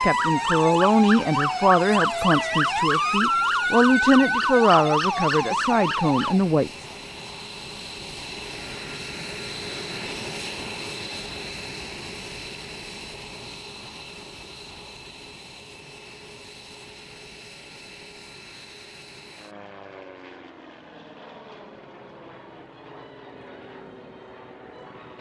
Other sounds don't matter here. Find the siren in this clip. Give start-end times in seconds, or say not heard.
0.0-6.4.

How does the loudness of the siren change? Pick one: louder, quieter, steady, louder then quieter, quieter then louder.
steady.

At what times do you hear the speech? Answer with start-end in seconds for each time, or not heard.
0.0-6.8.